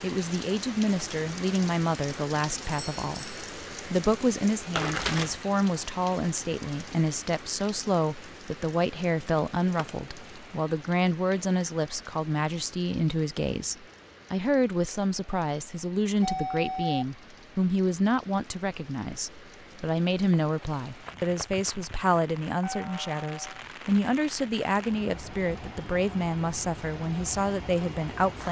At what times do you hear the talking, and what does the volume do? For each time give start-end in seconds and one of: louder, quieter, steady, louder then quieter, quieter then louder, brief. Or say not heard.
0.0-28.4 steady.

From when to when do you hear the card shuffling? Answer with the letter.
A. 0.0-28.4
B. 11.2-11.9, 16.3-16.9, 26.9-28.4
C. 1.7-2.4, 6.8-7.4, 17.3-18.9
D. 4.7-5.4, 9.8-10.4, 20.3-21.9
D.